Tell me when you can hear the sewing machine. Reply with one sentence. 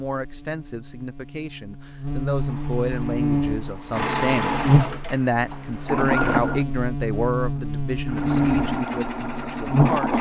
The sewing machine can be heard from 2.2 to 6.7 s and from 8.1 to 10.1 s.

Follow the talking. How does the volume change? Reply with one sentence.
The volume of the talking goes up, then down.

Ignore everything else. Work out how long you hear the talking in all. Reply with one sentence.
You can hear the talking for 10 seconds altogether.